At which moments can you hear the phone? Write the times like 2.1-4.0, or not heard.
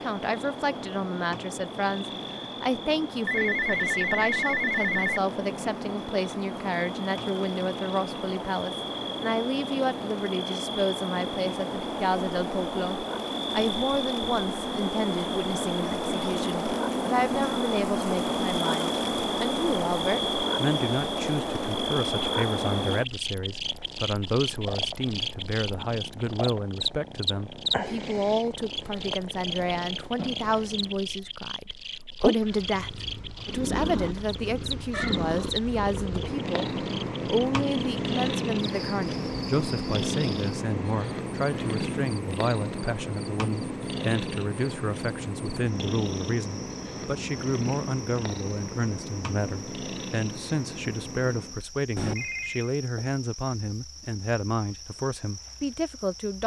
3.2-5.2, 52.0-52.7.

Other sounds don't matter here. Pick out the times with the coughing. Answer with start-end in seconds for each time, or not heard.
not heard.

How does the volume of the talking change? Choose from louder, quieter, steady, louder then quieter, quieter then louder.
steady.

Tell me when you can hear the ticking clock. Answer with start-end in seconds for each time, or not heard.
not heard.